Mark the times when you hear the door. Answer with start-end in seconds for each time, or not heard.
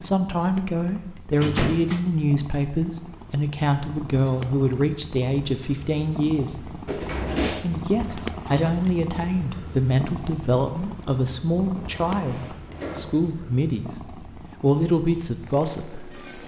1.3-2.0, 6.8-7.7, 11.8-13.2.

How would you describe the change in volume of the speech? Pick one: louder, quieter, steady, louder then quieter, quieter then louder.
steady.